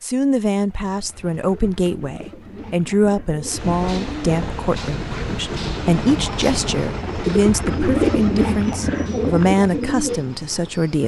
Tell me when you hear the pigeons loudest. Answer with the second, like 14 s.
8 s.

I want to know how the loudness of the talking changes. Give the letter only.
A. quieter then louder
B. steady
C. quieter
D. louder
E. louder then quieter
B.